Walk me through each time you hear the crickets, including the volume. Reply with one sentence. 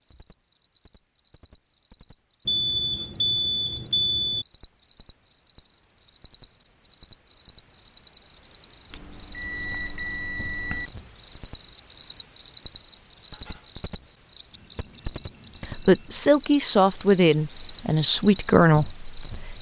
You can hear the crickets from 0.0 to 19.5 s, getting louder.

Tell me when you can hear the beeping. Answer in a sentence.
You can hear the beeping from 2.5 to 4.5 s, from 8.9 to 10.9 s and from 14.5 to 16.2 s.